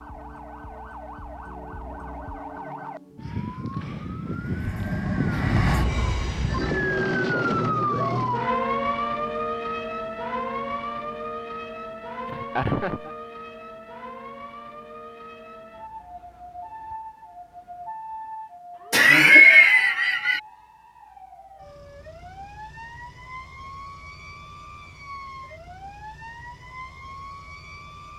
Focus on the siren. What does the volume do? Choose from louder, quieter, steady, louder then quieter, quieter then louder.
louder then quieter.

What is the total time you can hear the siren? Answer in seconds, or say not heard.
28 s.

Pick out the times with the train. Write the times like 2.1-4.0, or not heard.
4.2-6.8.